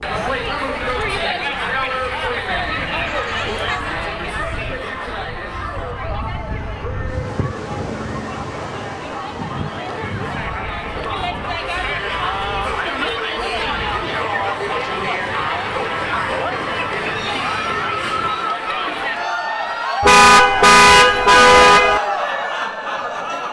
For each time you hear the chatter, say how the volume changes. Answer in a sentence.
You can hear the chatter from 0.0 to 23.4 s, getting quieter then louder.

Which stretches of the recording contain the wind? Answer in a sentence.
The wind can be heard from 0.1 to 18.4 s.